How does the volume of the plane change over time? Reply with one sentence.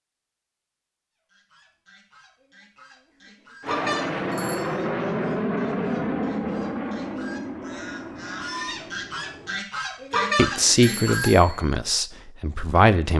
The volume of the plane goes down.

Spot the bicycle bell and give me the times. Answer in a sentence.
The bicycle bell can be heard from 3.6 to 4.7 s and from 10.1 to 11.6 s.